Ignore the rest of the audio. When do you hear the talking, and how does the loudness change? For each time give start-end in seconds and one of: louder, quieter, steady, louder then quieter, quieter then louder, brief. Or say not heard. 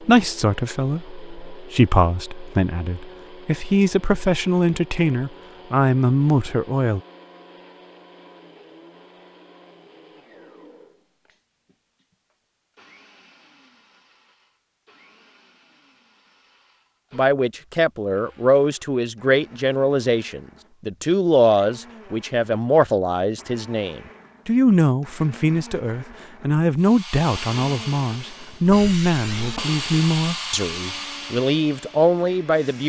0.0-7.0 louder
17.1-32.8 steady.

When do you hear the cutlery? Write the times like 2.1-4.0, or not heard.
not heard.